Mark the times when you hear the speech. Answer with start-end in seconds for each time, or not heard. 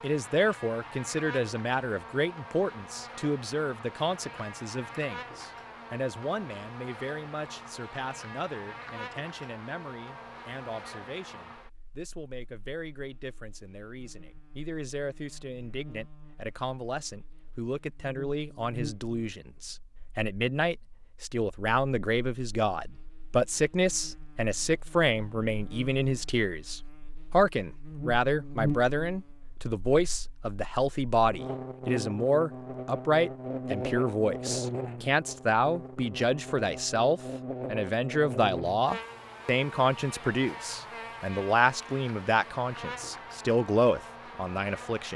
0.0-45.1.